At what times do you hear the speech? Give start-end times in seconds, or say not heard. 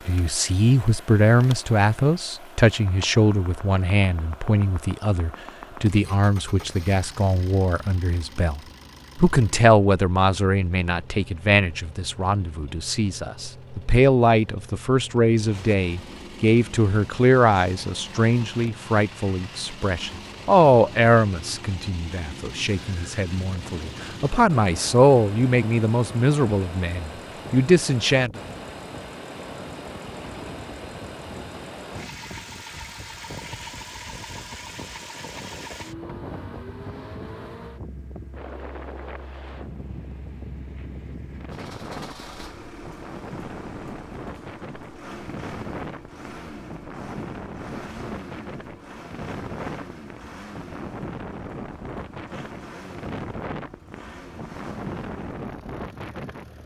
0.1-28.4.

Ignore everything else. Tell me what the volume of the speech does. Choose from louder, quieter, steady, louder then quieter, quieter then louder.
steady.